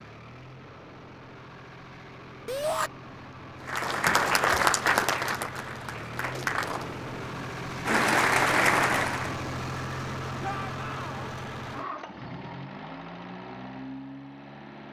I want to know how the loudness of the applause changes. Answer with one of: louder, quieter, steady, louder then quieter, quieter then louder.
quieter then louder.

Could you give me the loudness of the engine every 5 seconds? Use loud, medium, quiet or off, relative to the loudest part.
medium, loud, loud.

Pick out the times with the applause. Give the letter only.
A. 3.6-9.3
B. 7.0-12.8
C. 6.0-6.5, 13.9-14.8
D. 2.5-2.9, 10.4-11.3
A.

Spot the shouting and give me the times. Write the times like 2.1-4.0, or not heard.
2.5-2.9, 10.4-11.3.